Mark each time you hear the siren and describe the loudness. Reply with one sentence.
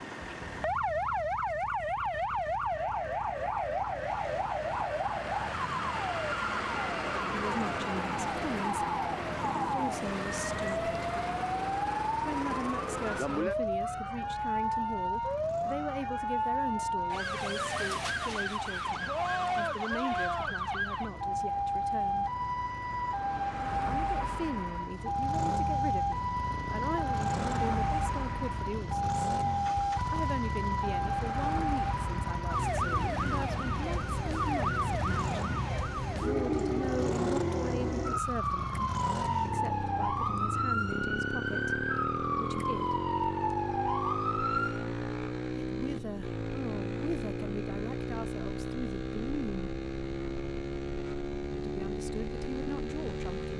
You can hear the siren from 0.0 to 44.9 s, at a steady volume.